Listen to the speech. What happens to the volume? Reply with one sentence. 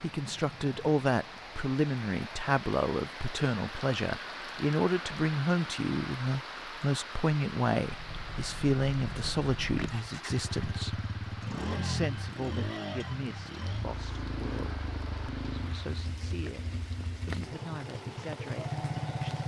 The loudness of the speech goes down.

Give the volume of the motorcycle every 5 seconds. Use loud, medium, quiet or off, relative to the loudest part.
off, medium, loud, loud.